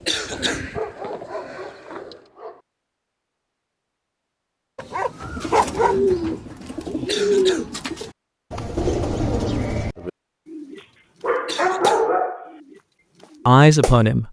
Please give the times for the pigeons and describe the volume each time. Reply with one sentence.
You can hear the pigeons briefly from 0.0 to 2.2 s; and from 5.2 to 14.0 s, getting quieter.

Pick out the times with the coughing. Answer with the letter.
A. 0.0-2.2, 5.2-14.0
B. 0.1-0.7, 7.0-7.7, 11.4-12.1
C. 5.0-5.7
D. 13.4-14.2
B.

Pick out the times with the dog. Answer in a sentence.
You can hear the dog from 0.7 to 2.6 s, from 4.8 to 6.0 s and from 11.2 to 12.5 s.